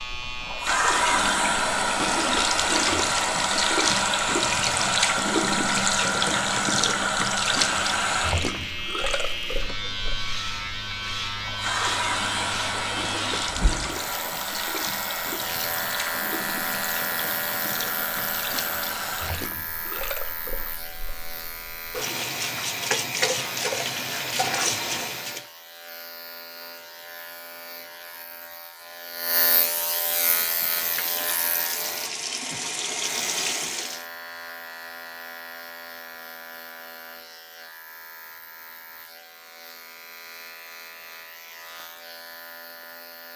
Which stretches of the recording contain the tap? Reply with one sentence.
You can hear the tap from 0.0 to 25.4 s and from 29.9 to 34.0 s.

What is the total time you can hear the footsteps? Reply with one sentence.
The footsteps can't be heard in this clip.